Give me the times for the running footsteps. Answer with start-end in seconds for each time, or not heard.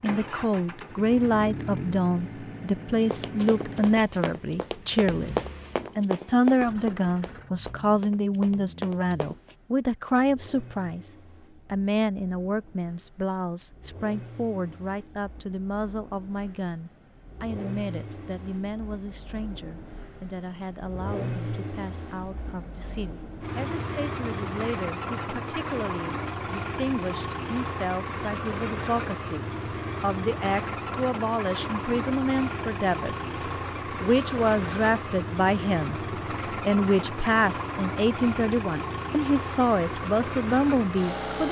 3.0-9.6.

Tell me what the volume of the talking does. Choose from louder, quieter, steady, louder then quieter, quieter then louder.
quieter then louder.